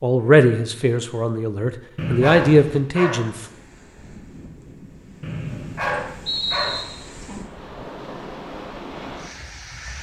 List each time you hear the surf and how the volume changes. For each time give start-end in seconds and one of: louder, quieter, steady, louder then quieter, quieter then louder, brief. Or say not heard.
3.3-9.9 louder.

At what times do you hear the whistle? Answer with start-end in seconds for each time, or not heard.
1.9-2.9, 5.2-6.8.